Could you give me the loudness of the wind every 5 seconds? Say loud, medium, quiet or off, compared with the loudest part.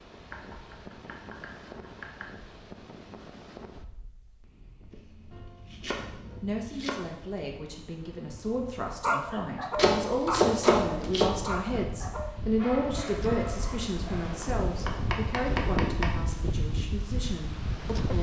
quiet, quiet, medium, loud.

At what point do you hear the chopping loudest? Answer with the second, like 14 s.
11 s.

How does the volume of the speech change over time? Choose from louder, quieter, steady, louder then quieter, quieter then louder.
louder then quieter.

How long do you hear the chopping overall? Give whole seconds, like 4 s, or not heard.
8 s.